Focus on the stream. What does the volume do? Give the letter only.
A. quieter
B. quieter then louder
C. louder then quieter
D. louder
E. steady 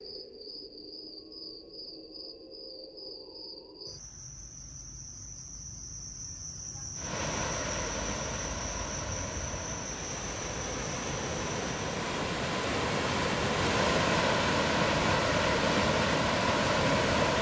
D.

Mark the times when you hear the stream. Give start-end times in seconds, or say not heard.
7.0-17.3.